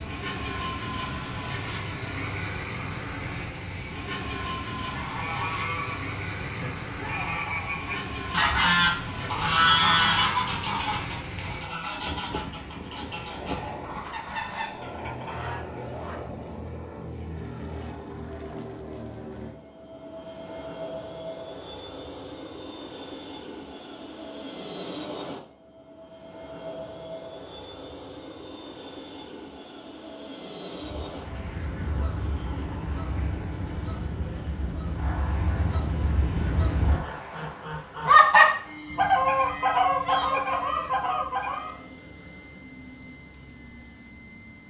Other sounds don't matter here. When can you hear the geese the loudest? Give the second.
38 s.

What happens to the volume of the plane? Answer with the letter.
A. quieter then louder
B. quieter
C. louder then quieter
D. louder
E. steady
B.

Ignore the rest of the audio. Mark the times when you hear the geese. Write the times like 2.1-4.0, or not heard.
4.9-15.7, 30.8-41.8.